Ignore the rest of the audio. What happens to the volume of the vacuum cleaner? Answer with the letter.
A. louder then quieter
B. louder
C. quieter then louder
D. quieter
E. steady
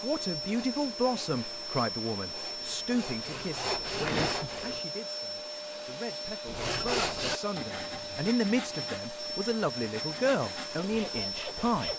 E.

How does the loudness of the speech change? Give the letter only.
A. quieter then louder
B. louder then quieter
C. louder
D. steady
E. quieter
A.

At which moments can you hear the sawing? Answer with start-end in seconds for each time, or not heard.
0.0-4.8, 6.5-11.9.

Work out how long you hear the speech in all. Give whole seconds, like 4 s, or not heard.
12 s.